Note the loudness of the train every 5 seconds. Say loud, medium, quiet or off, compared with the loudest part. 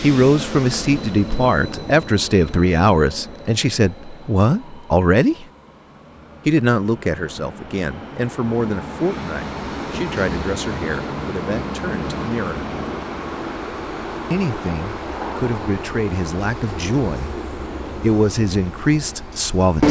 medium, medium, loud, loud.